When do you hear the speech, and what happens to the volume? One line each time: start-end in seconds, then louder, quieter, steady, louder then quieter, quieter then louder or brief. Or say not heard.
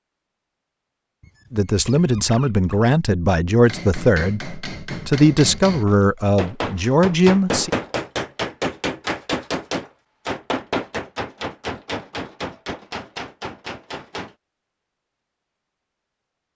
1.5-7.7 steady.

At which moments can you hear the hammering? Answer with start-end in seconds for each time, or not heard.
3.6-14.3.